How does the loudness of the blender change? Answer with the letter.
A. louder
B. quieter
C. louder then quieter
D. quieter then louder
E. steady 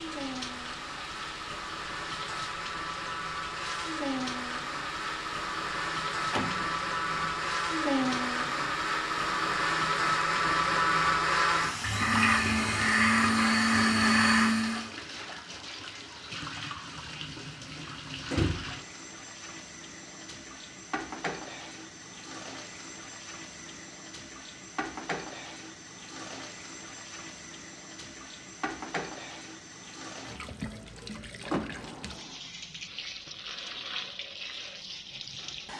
A.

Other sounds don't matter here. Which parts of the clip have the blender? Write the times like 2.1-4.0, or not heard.
0.0-14.9.